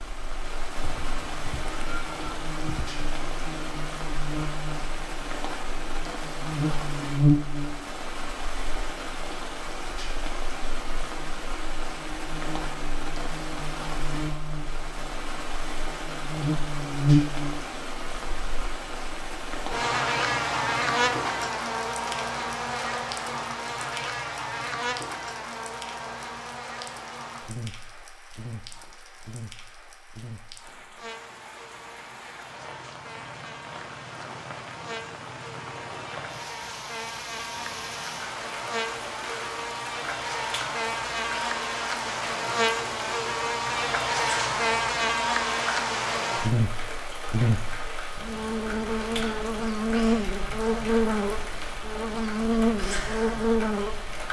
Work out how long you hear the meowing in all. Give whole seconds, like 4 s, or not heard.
2 s.